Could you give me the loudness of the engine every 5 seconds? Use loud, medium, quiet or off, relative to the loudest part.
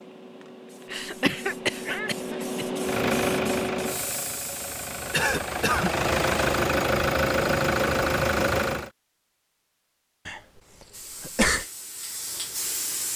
medium, loud, off.